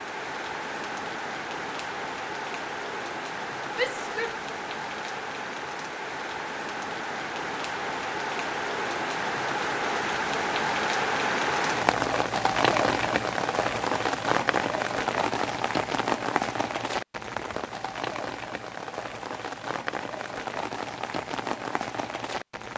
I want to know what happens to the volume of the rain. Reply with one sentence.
The loudness of the rain goes up, then down.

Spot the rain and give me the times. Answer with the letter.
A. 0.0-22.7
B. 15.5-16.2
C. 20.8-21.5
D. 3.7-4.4
A.